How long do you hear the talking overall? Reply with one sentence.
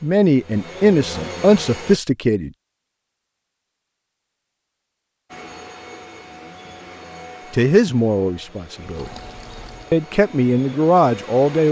The talking can be heard for 6 seconds in total.